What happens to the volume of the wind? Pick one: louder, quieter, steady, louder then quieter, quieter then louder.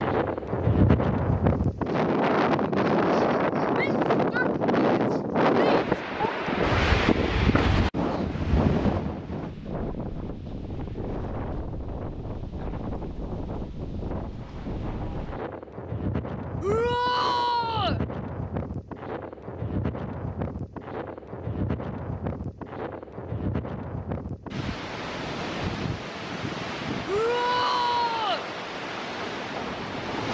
quieter.